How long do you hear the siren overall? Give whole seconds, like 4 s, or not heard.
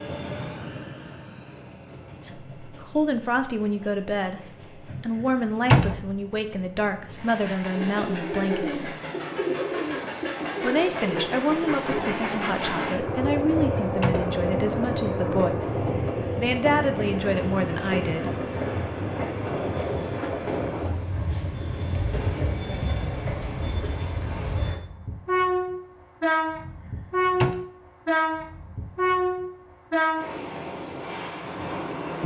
not heard.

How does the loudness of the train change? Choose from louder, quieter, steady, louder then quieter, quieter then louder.
louder.